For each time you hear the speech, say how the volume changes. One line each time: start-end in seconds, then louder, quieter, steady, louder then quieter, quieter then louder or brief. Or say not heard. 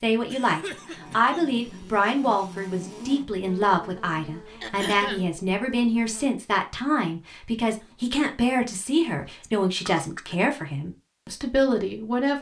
0.0-12.3 steady.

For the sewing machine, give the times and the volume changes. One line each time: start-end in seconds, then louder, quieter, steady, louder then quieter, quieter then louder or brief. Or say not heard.
not heard.